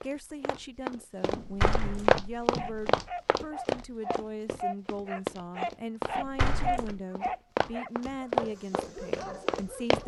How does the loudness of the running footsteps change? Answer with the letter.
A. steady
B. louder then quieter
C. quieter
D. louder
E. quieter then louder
E.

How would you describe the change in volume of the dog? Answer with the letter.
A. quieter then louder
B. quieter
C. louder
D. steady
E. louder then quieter
E.